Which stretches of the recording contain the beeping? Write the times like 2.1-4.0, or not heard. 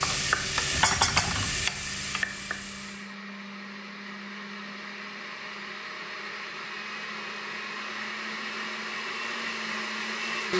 not heard.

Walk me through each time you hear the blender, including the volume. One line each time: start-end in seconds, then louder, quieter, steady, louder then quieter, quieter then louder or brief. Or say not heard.
0.1-10.5 louder.